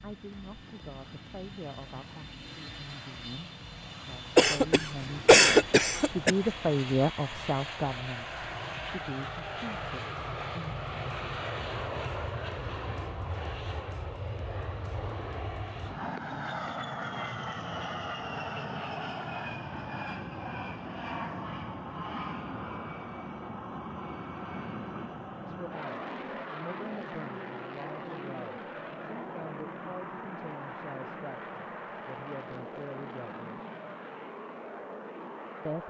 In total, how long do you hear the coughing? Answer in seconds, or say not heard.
2 s.